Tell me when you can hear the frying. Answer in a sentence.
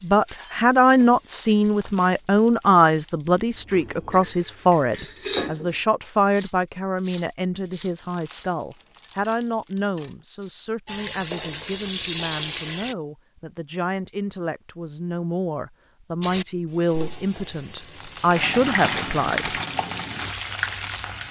You can hear the frying from 0.0 to 1.7 s, from 10.8 to 12.9 s and from 16.2 to 21.2 s.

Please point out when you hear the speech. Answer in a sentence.
The speech can be heard from 0.0 to 19.6 s.